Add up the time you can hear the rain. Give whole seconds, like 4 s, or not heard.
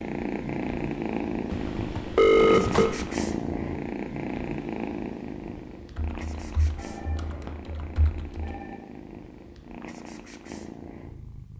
not heard.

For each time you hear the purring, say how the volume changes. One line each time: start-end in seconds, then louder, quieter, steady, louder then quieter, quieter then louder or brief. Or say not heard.
0.0-11.5 quieter.